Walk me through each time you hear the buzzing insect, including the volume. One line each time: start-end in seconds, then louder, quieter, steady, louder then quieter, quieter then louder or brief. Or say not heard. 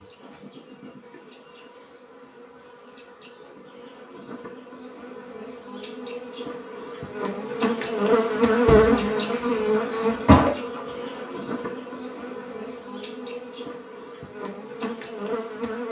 0.0-15.8 louder then quieter.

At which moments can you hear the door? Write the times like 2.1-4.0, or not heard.
8.7-9.1.